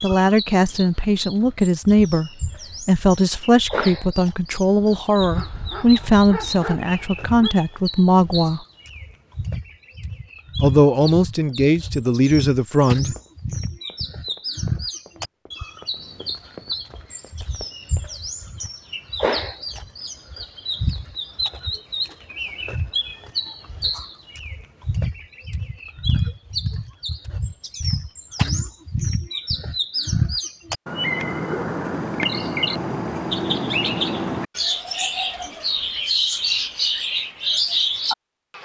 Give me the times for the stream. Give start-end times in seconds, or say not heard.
not heard.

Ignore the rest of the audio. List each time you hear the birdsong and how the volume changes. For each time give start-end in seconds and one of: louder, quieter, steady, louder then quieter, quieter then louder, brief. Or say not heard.
0.0-38.5 louder.